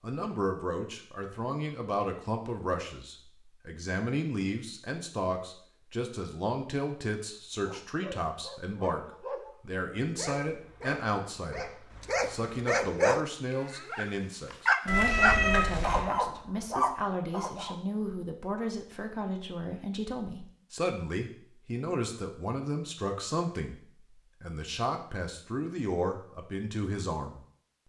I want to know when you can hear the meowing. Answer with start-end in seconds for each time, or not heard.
14.8-16.1.